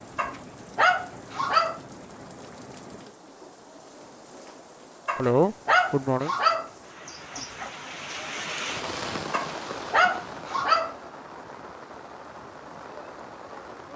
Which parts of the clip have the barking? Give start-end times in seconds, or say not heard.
0.1-1.8, 5.0-7.7, 9.3-10.9.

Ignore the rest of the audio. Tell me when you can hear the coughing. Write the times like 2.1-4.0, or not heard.
5.2-6.3.